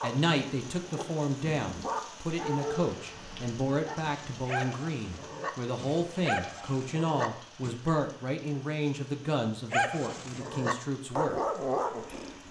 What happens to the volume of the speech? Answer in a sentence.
The loudness of the speech stays about the same.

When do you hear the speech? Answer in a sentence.
The speech can be heard from 0.0 to 11.4 s.